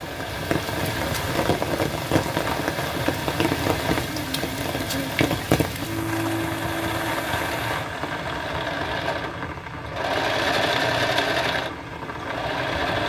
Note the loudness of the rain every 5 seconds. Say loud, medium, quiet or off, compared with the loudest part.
loud, loud, medium.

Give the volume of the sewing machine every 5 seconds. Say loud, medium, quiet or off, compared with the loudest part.
medium, medium, loud.